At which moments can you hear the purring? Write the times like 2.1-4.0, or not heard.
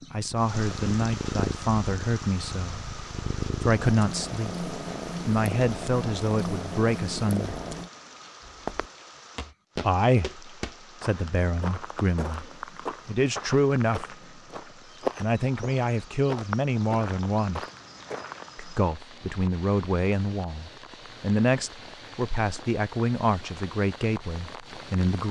0.0-7.9.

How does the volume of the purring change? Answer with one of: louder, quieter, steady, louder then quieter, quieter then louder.
quieter then louder.